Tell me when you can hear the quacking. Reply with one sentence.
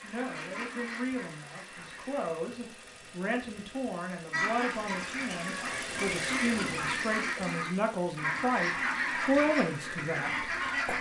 The quacking can be heard from 0.0 to 2.3 s and from 4.3 to 10.9 s.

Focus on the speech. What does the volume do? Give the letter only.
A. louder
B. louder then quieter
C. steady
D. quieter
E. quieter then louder
A.